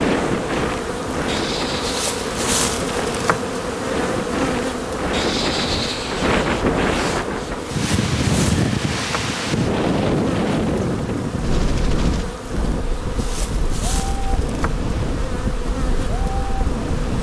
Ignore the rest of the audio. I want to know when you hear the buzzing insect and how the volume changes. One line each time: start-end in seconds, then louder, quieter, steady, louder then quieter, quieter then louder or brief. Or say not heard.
0.1-17.1 quieter.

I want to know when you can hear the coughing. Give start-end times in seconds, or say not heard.
not heard.